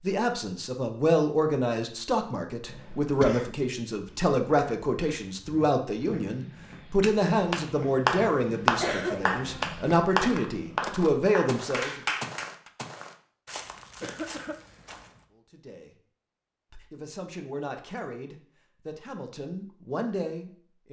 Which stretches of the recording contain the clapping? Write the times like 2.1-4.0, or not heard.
7.0-12.5.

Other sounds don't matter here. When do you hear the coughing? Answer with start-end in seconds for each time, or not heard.
2.6-3.5, 8.8-9.7, 14.0-14.6.